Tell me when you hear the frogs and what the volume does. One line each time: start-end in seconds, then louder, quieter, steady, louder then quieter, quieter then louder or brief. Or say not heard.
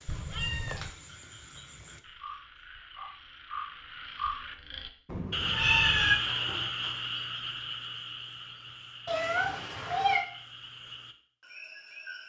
0.0-12.2 louder then quieter.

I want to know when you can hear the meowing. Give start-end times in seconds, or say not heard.
0.1-0.9, 5.0-6.2, 9.1-10.2.